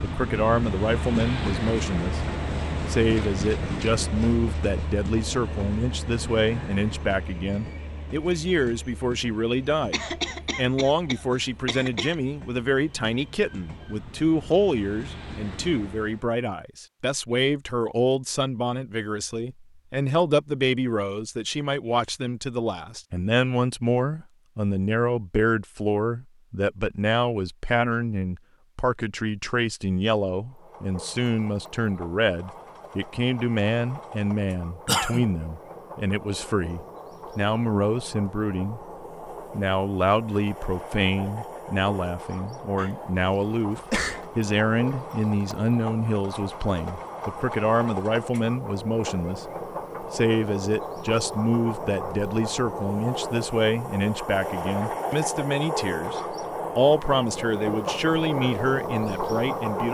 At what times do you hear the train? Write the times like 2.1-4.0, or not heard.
0.0-16.3, 30.4-59.8.